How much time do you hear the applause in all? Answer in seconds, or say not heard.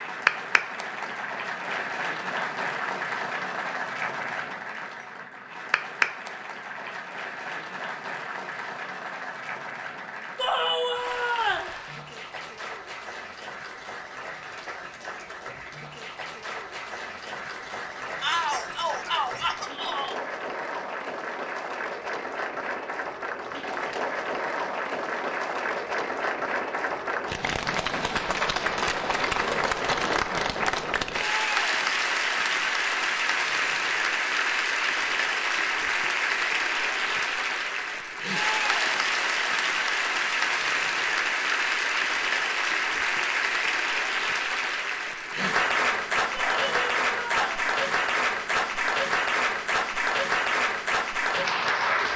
52 s.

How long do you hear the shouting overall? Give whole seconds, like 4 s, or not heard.
5 s.